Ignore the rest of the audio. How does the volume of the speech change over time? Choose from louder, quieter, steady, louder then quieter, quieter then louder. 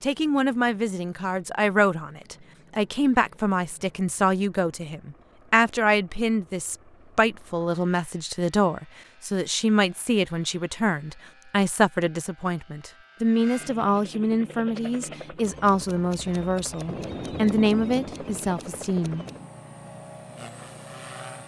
steady.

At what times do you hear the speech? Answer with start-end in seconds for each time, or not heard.
0.0-19.2.